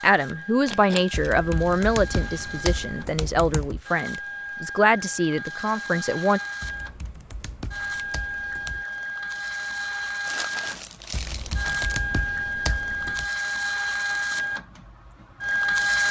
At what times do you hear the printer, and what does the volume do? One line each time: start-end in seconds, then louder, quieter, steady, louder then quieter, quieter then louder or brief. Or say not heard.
0.0-16.0 louder.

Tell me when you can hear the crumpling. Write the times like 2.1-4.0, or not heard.
0.7-1.3, 10.2-12.0.